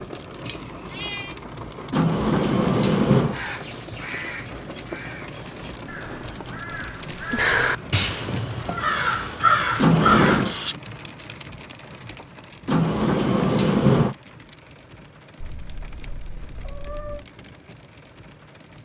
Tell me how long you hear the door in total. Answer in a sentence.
The door can be heard for 4 seconds in total.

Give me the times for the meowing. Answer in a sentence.
You can hear the meowing from 0.5 to 1.4 s, from 7.7 to 9.0 s and from 15.3 to 17.2 s.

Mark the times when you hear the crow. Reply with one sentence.
You can hear the crow from 3.3 to 10.8 s.